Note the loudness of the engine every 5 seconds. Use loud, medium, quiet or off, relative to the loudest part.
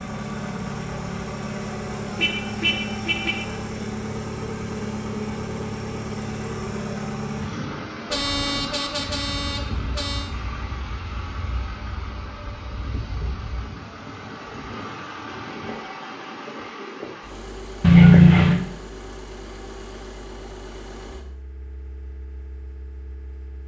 loud, loud, medium, medium, quiet.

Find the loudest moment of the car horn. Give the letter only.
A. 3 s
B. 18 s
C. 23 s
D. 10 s
B.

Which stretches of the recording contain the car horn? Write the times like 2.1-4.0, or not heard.
2.1-3.5, 8.1-10.2, 17.8-18.6.